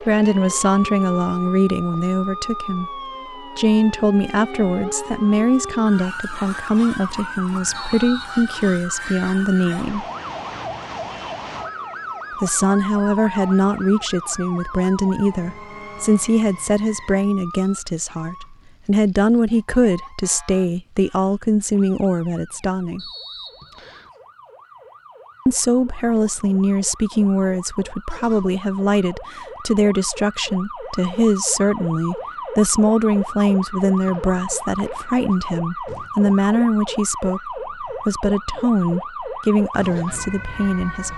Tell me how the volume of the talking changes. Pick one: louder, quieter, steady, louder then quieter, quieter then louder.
steady.